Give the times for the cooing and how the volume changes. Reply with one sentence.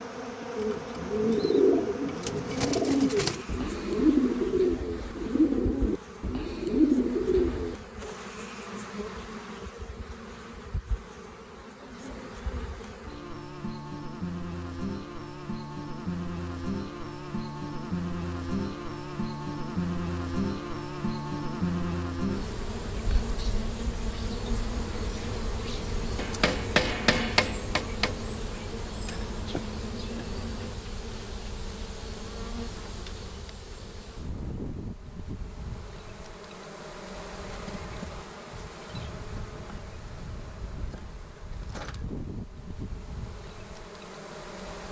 The cooing can be heard from 0.6 to 7.8 s, at a steady volume.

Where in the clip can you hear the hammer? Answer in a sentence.
You can hear the hammer from 26.1 to 28.1 s.